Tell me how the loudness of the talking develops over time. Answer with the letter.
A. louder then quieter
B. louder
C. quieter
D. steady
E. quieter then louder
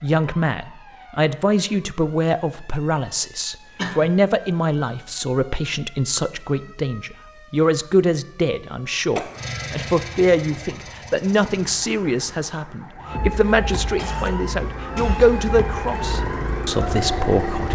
D.